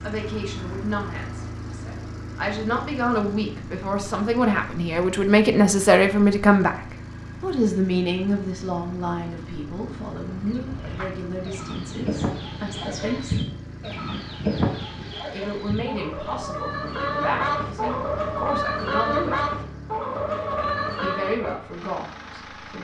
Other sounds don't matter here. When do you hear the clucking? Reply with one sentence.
You can hear the clucking from 10.3 to 21.6 s.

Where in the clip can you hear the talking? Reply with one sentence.
The talking can be heard from 0.0 to 6.8 s, from 7.4 to 13.4 s, from 15.3 to 19.5 s and from 21.0 to 22.7 s.